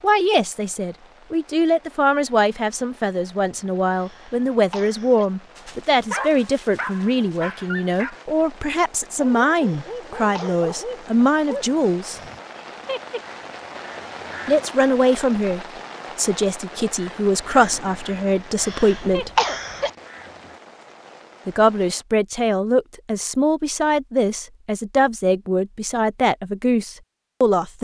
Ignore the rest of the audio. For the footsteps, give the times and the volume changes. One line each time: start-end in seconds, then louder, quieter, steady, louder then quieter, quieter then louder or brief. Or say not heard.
not heard.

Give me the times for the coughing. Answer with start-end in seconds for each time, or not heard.
3.9-5.2, 9.6-10.7, 18.6-19.9.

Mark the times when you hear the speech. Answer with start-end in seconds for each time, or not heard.
0.0-12.2, 14.4-19.3, 21.4-27.7.